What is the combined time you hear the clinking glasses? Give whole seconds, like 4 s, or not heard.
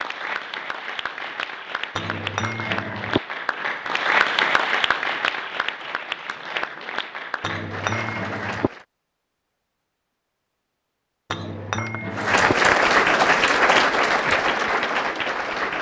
4 s.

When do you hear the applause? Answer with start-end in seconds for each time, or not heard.
0.0-8.8, 12.2-15.7.